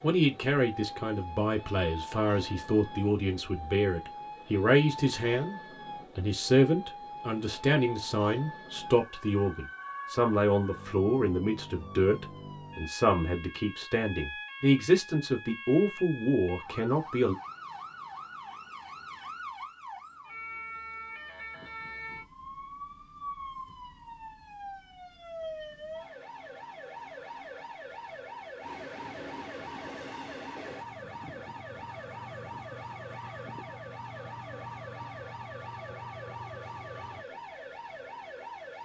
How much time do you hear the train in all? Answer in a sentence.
You can hear the train for 9 seconds altogether.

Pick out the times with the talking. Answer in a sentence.
You can hear the talking from 0.0 to 17.4 s.